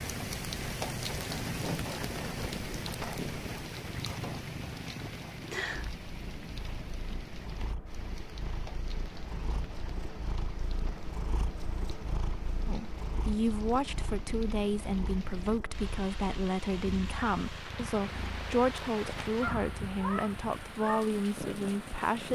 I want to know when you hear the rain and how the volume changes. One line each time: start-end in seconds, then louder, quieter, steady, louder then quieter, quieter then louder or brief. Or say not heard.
0.0-22.3 quieter then louder.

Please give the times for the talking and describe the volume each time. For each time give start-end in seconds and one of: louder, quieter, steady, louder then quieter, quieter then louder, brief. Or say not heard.
12.7-22.3 steady.